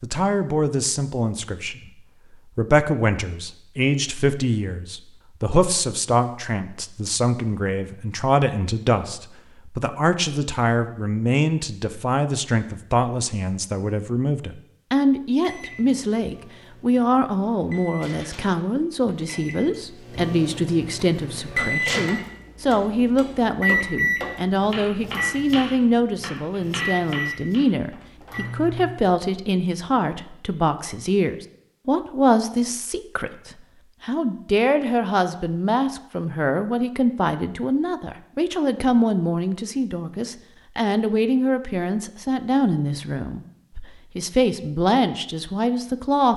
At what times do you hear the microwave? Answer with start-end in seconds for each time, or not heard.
15.4-28.9.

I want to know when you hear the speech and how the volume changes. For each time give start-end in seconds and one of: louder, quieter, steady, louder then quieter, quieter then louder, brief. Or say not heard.
0.0-46.3 steady.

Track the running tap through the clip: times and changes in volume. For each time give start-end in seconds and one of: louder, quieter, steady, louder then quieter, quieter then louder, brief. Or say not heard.
not heard.